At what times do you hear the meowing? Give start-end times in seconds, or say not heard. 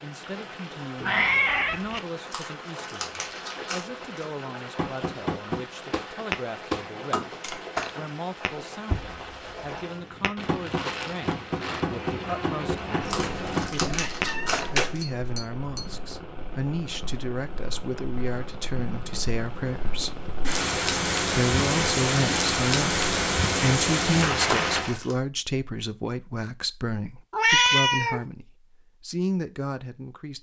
1.0-2.0, 13.1-14.9, 27.3-28.2.